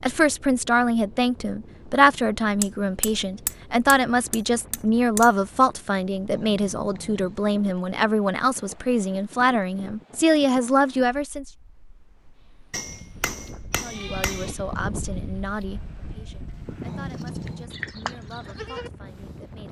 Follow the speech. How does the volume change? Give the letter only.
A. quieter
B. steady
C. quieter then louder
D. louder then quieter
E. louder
A.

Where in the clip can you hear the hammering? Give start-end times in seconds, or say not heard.
2.6-5.3, 12.7-14.6.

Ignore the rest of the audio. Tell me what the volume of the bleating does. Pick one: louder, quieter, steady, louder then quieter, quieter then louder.
quieter then louder.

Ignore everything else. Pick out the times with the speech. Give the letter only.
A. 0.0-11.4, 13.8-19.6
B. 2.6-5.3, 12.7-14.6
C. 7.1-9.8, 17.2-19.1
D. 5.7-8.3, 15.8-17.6
A.